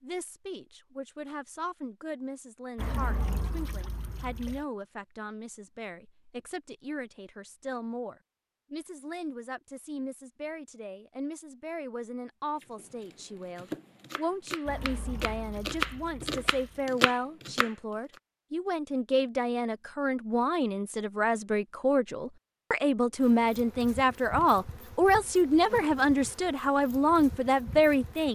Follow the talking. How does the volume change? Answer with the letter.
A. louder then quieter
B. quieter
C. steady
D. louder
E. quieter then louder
D.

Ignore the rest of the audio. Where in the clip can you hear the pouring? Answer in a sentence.
The pouring can be heard from 2.8 to 4.7 s and from 14.7 to 16.9 s.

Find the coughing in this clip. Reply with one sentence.
The coughing can't be heard in this clip.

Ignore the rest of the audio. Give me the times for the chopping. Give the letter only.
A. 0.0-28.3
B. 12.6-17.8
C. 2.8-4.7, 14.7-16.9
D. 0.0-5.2
B.